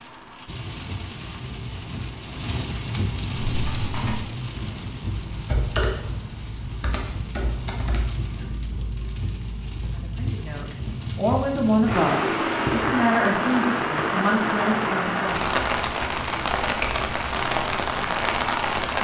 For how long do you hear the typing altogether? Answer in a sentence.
You can hear the typing for 5 seconds altogether.